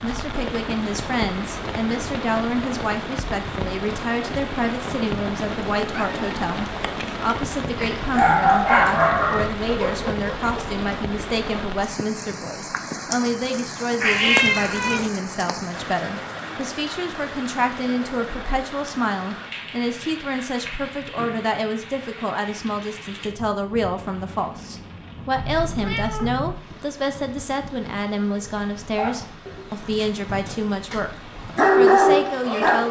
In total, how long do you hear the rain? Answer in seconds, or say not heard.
33 s.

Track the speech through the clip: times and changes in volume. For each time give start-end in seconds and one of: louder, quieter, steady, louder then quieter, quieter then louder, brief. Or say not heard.
0.0-32.8 steady.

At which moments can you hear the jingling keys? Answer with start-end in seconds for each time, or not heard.
not heard.